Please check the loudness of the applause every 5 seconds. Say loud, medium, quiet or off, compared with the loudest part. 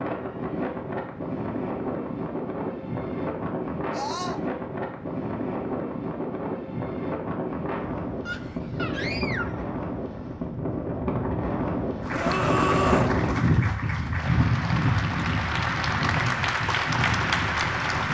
off, off, medium, loud.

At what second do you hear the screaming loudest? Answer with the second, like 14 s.
13 s.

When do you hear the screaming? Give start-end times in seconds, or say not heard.
3.9-4.4, 8.2-9.7, 12.1-13.2.